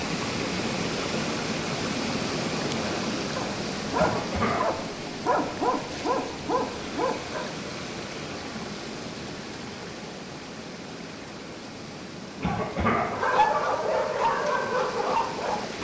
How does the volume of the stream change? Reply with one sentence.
The volume of the stream goes down.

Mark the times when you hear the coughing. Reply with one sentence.
The coughing can be heard from 4.0 to 4.8 s and from 12.4 to 13.2 s.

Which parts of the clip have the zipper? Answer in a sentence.
The zipper can't be heard in this clip.